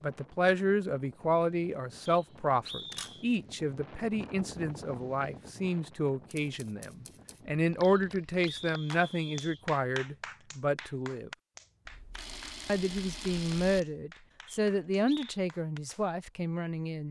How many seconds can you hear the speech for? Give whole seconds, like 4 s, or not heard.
16 s.